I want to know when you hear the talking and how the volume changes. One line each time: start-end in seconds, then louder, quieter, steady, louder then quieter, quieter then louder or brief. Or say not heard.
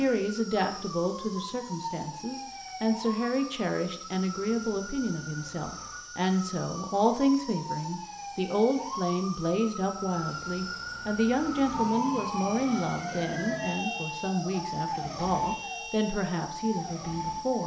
0.0-17.6 steady.